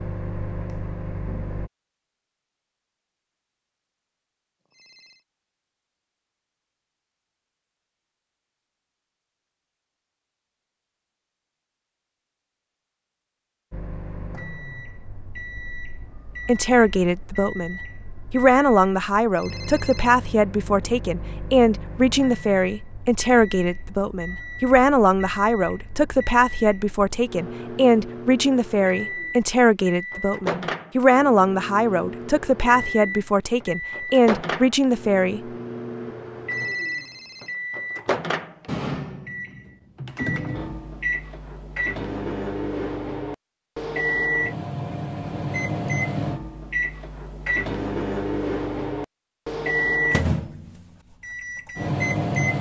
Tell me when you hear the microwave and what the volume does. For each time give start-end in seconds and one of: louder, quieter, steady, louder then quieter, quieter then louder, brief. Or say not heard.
0.0-1.7 brief
13.7-52.5 louder.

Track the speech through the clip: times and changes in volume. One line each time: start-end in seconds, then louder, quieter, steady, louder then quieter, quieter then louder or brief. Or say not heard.
16.4-35.4 steady.